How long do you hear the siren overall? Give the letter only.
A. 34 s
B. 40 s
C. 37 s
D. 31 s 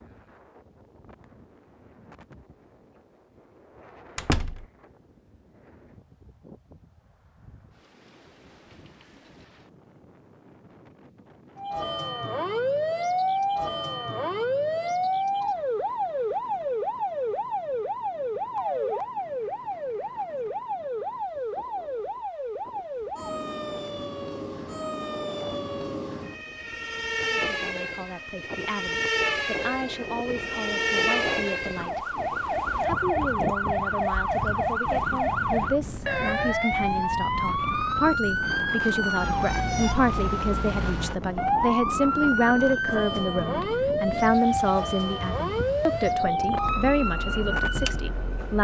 C.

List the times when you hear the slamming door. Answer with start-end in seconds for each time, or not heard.
4.2-4.7.